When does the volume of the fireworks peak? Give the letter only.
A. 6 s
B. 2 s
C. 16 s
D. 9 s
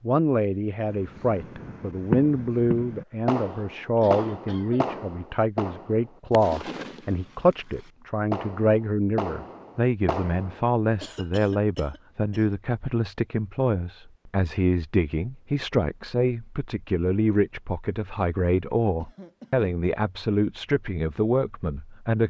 B.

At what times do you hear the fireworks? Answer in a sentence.
You can hear the fireworks from 0.9 to 10.7 s.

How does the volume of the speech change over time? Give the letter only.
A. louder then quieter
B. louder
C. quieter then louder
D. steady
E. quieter
D.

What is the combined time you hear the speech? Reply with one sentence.
The speech can be heard for 22 seconds in total.